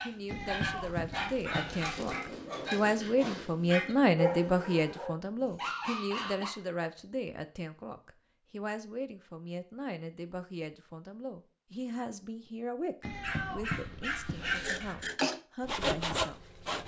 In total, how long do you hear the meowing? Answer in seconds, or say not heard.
4 s.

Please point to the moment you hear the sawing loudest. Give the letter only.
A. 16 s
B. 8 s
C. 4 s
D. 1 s
A.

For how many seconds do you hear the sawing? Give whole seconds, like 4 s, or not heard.
2 s.